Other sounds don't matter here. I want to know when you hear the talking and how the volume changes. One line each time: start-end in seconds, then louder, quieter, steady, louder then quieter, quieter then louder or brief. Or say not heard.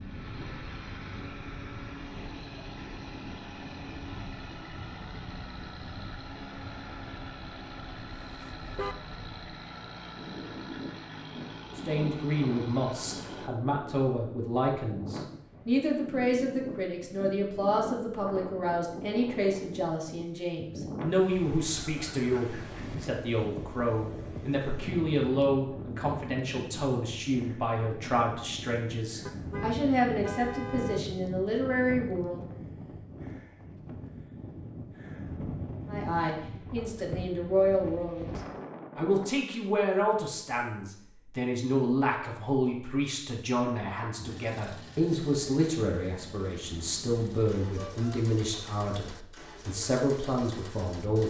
11.8-32.4 steady
35.9-51.2 steady.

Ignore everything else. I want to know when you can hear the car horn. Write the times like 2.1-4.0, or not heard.
8.1-8.9, 29.2-31.0, 47.8-48.2.